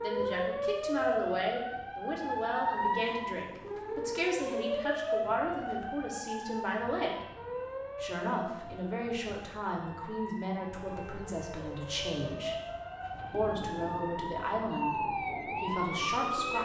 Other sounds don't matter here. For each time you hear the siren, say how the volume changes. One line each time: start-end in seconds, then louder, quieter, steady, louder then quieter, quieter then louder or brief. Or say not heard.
0.0-16.6 quieter then louder.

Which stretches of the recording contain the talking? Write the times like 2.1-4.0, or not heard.
0.0-7.2, 8.0-12.6, 13.3-16.6.